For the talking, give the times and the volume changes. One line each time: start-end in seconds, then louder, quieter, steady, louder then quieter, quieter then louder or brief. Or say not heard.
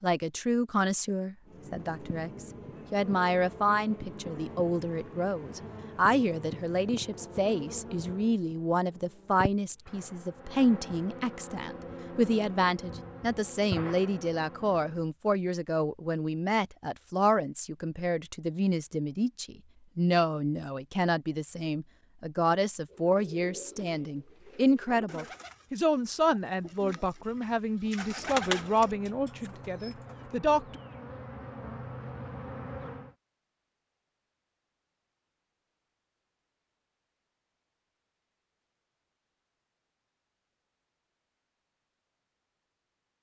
0.0-30.6 steady.